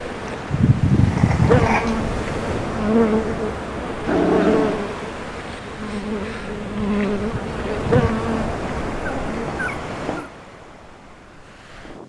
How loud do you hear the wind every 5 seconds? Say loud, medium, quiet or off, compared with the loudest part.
loud, loud, medium.